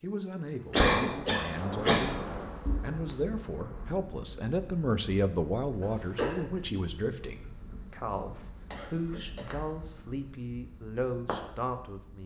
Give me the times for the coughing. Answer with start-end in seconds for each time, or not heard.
0.7-2.0, 5.8-6.4, 8.7-9.5.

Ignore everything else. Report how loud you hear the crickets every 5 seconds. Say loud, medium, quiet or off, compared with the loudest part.
medium, loud, loud.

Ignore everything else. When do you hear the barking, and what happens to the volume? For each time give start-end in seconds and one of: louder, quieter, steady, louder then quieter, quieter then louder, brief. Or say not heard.
not heard.